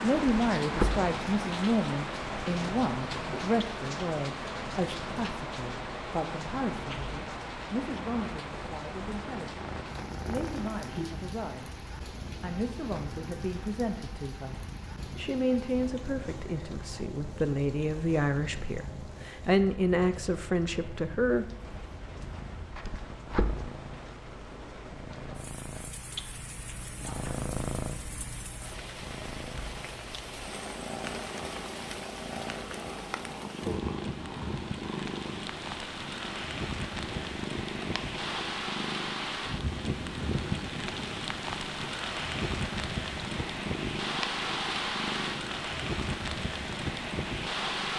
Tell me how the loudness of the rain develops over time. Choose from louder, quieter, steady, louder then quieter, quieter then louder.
quieter then louder.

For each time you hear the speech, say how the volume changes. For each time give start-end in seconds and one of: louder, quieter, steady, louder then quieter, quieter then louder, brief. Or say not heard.
0.0-11.8 quieter
12.4-21.4 louder.